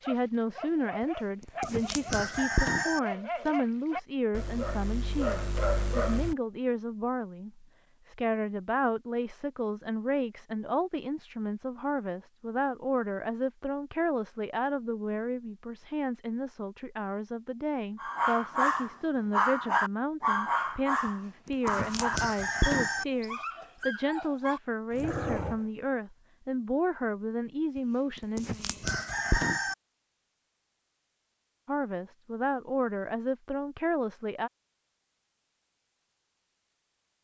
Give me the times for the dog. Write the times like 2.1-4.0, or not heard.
0.0-6.3, 17.9-25.6.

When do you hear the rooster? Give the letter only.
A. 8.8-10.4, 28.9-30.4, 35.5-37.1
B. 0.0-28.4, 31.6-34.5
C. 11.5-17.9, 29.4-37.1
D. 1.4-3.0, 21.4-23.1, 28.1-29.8
D.